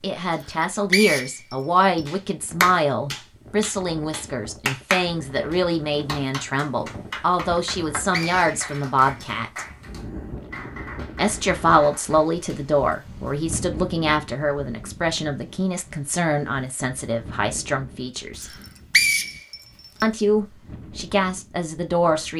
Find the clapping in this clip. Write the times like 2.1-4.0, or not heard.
2.0-12.6.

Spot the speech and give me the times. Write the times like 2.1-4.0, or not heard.
0.0-9.7, 11.2-18.5, 20.0-22.3.